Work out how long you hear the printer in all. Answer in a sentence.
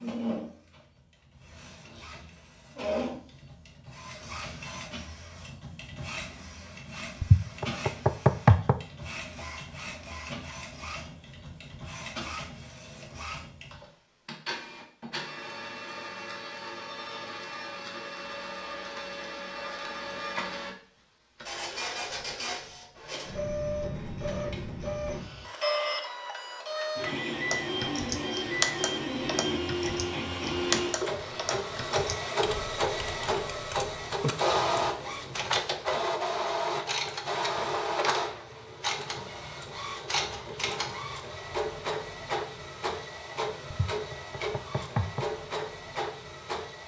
The printer can be heard for 47 seconds in total.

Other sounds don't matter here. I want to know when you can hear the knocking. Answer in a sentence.
The knocking can be heard from 7.2 to 8.8 s and from 43.7 to 45.3 s.